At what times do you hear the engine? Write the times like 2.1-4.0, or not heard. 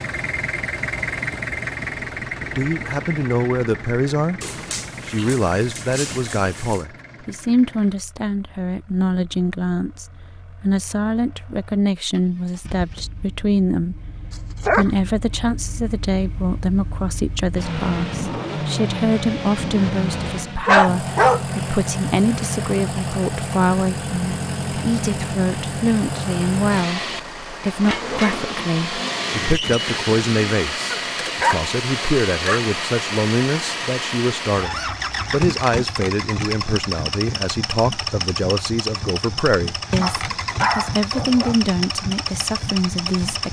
0.0-43.4.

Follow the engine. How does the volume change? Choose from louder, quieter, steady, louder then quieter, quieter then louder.
quieter then louder.